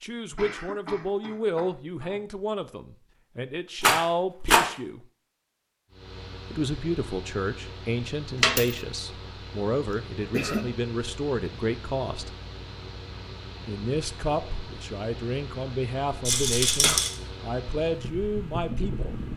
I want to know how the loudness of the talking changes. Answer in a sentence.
The volume of the talking stays about the same.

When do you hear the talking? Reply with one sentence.
The talking can be heard from 0.0 to 5.0 s, from 6.5 to 12.3 s and from 13.7 to 19.3 s.